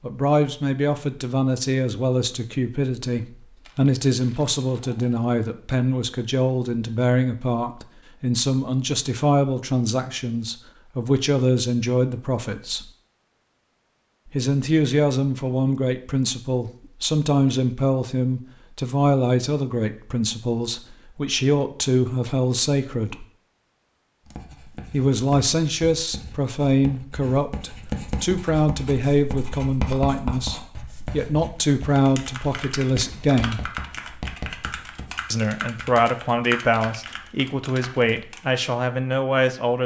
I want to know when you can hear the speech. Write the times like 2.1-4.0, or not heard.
0.0-12.9, 14.2-23.2, 24.9-33.6, 35.3-39.8.